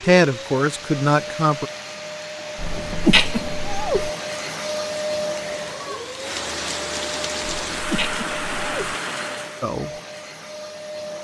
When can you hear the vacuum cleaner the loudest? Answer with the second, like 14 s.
5 s.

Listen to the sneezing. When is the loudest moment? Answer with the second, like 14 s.
3 s.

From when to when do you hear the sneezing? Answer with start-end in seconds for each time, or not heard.
2.5-4.1, 7.4-8.9.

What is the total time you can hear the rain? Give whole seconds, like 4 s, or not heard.
10 s.